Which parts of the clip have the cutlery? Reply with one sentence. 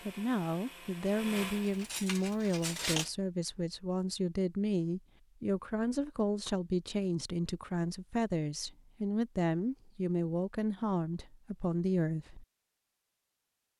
You can hear the cutlery from 1.4 to 3.1 s.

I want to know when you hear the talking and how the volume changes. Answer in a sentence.
You can hear the talking from 0.1 to 12.4 s, at a steady volume.